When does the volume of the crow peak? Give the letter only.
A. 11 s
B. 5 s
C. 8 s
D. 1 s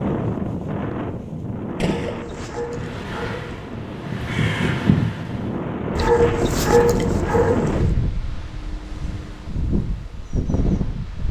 B.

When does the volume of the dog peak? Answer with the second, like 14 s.
7 s.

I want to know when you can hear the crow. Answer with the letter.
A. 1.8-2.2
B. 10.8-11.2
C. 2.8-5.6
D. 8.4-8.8
C.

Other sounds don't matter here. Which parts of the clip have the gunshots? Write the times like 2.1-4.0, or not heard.
1.8-2.2.